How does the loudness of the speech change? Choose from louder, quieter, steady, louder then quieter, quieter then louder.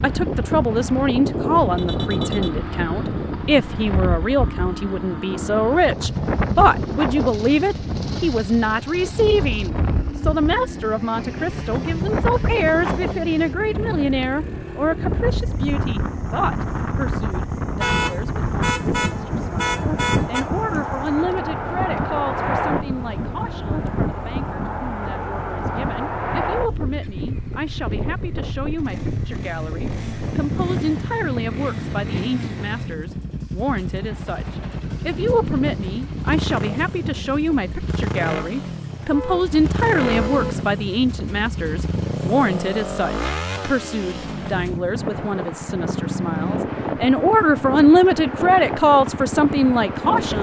quieter then louder.